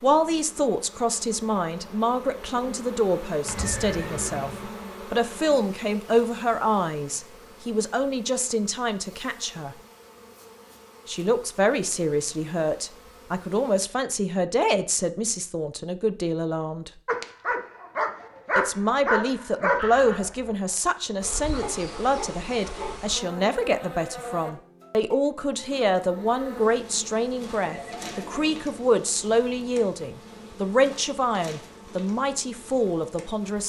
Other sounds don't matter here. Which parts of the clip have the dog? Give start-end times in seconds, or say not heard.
17.1-23.1.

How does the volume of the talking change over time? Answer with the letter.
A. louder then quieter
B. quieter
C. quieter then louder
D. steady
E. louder
D.